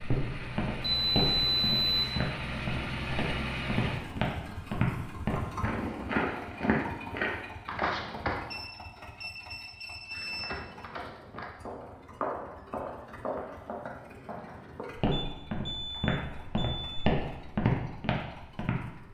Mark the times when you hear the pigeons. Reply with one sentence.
You can't hear the pigeons here.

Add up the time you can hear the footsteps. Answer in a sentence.
The footsteps can be heard for 17 seconds in total.